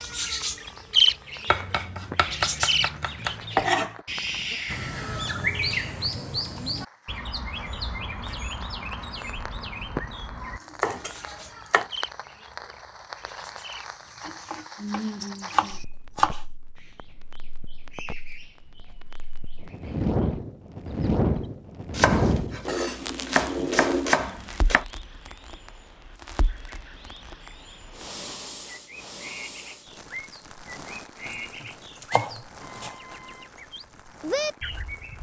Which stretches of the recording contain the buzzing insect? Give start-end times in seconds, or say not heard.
not heard.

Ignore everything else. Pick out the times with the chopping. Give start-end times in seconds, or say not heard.
1.4-4.0, 10.4-11.8, 14.2-16.4, 21.9-24.9, 31.2-33.0.